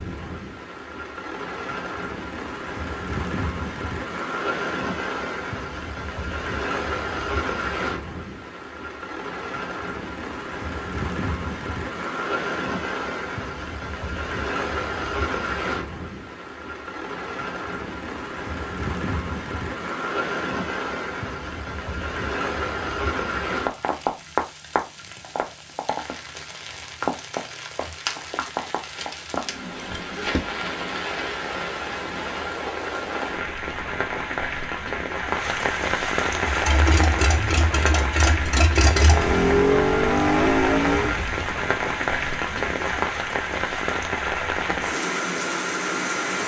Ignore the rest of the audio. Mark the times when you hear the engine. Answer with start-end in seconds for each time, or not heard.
36.3-41.5.